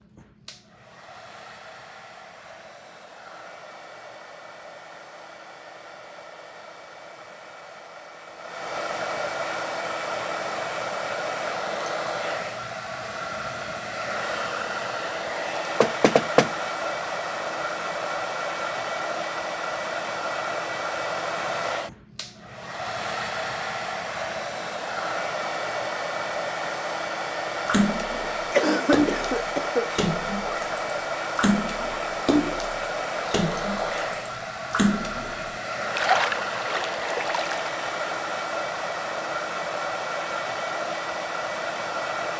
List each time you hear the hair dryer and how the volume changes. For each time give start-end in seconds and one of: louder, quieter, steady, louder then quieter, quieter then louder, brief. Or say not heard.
0.0-42.3 louder.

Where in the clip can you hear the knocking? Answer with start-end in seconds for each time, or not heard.
15.8-16.5.